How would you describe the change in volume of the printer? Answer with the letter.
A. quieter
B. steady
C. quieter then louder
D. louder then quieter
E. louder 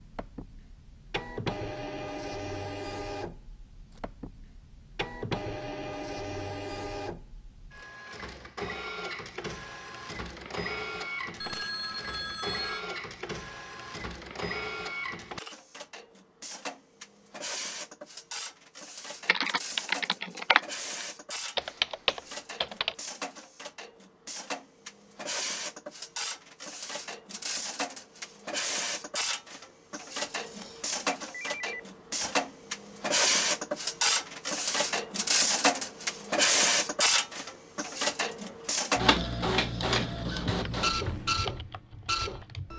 E.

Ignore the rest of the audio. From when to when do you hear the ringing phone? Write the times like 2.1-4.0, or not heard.
11.4-12.8, 30.3-32.3.